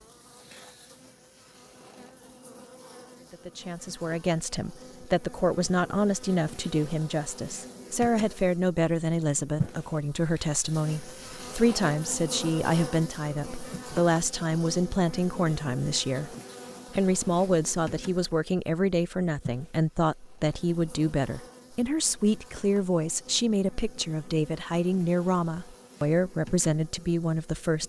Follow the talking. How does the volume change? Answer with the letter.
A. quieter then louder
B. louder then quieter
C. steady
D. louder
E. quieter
C.